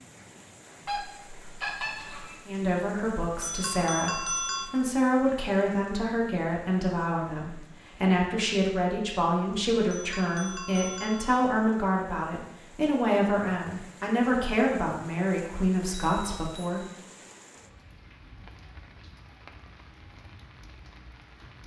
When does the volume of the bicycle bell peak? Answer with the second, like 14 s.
4 s.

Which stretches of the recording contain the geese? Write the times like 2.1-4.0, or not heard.
0.8-2.5.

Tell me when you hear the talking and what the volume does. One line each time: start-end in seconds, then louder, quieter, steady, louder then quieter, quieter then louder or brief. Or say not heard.
2.5-16.9 steady.